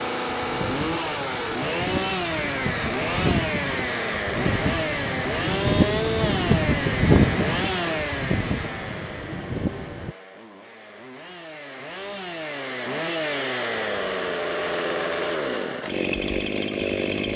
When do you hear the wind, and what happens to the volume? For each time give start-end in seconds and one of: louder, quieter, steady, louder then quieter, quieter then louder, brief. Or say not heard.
0.2-10.2 louder then quieter.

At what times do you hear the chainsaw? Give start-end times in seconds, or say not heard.
0.0-17.3.